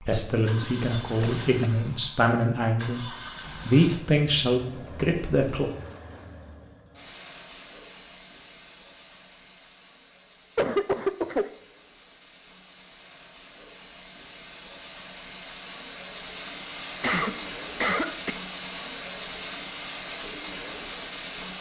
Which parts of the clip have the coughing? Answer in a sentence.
The coughing can be heard from 0.4 to 1.7 s, from 10.6 to 11.5 s and from 17.0 to 18.3 s.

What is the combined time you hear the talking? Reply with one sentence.
The talking can be heard for 6 seconds in total.